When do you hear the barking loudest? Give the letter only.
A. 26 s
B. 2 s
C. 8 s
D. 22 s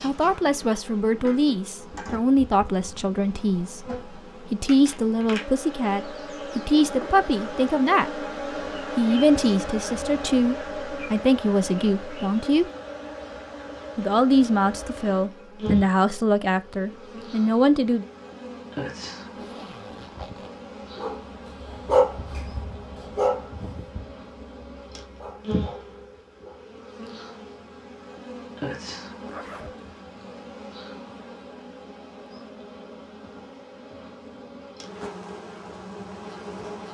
D.